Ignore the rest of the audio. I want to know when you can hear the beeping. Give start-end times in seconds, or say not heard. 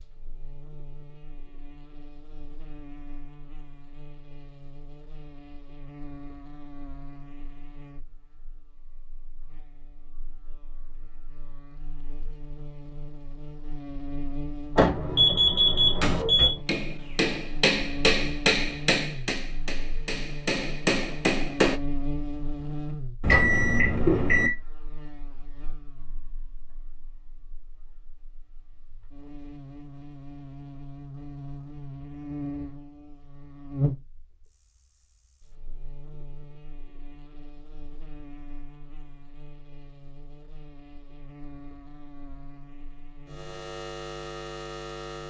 14.8-16.6, 23.2-24.5.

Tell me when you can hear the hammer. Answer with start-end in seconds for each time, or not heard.
16.0-21.8.